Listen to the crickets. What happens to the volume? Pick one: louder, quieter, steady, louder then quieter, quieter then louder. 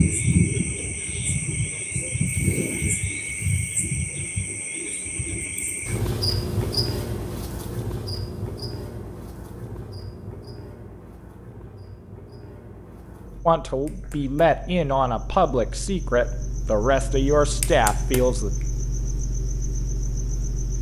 quieter then louder.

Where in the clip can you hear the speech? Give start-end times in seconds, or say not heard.
13.4-18.5.